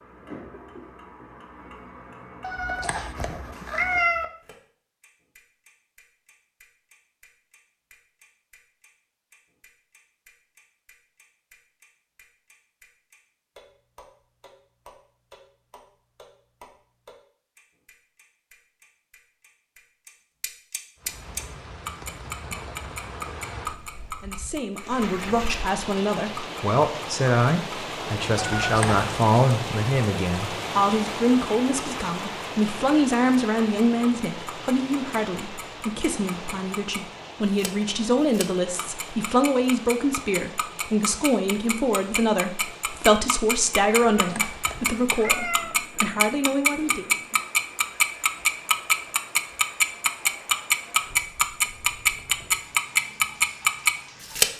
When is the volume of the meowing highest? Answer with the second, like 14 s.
4 s.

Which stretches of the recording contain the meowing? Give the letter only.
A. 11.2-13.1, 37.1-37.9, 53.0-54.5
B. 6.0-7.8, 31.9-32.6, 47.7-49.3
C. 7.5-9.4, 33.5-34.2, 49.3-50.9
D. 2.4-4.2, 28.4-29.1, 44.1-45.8
D.